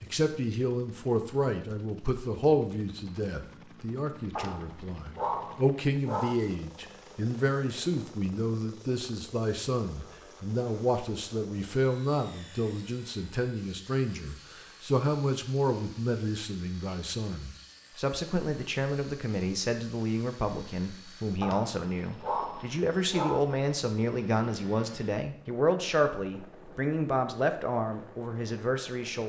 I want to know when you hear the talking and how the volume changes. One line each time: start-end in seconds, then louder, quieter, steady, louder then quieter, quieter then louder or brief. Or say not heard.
0.0-29.2 steady.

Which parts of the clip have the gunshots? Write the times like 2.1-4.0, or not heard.
not heard.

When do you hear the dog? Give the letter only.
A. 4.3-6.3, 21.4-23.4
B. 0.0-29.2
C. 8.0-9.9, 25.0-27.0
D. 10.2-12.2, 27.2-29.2
A.